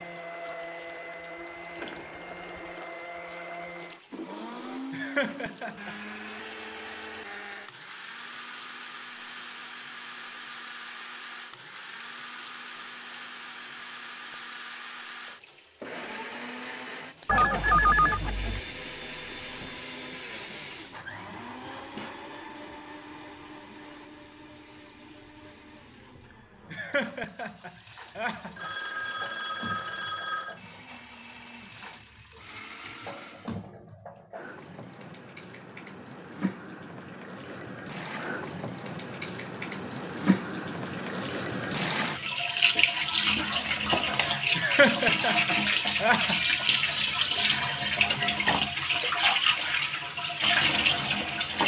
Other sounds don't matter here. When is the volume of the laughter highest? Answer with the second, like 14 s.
45 s.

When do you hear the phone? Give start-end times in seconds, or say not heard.
17.2-18.6, 28.6-30.6.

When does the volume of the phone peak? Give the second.
18 s.